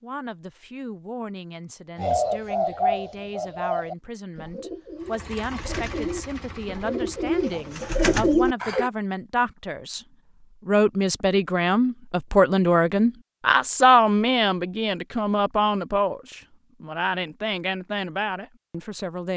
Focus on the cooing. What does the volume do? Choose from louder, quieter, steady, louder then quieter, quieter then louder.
quieter then louder.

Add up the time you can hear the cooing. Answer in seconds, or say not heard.
7 s.